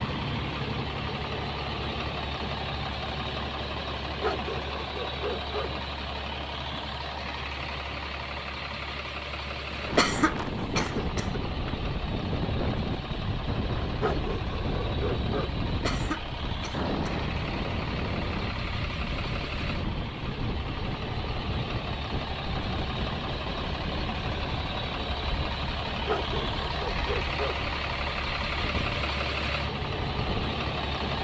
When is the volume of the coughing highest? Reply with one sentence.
The volume of the coughing peaks at 10 seconds.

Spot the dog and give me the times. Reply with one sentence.
The dog can be heard from 4.2 to 5.7 s, from 14.0 to 15.5 s and from 26.1 to 27.6 s.